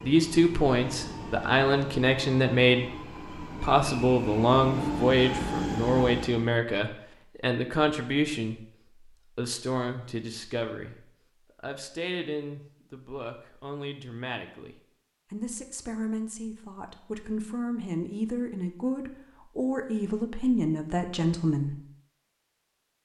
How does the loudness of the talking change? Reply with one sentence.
The loudness of the talking goes down, then up.